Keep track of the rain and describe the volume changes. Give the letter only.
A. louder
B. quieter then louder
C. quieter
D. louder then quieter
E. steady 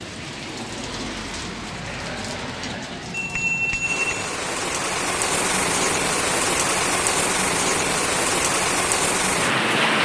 A.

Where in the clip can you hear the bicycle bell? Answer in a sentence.
The bicycle bell can be heard from 3.1 to 4.3 s.